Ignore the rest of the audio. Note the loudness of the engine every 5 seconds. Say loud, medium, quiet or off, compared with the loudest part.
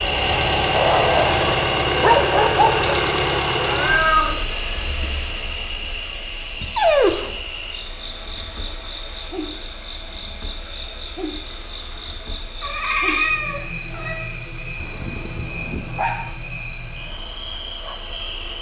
loud, quiet, quiet, quiet.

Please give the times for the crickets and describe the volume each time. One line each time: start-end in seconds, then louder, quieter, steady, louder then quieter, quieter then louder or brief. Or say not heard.
0.0-18.5 quieter.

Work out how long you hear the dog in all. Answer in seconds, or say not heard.
5 s.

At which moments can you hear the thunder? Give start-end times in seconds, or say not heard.
not heard.